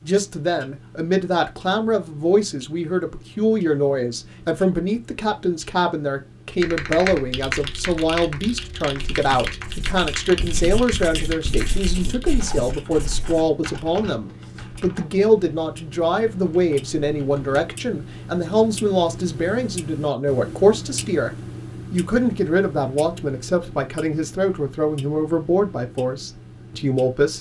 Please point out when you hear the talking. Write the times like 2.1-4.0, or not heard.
0.0-21.3, 21.9-27.3.